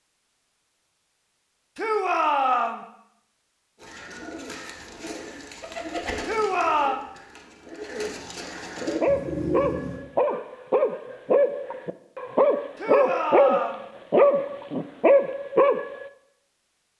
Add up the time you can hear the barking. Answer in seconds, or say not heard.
7 s.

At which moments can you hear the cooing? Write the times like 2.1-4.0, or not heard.
3.8-10.0.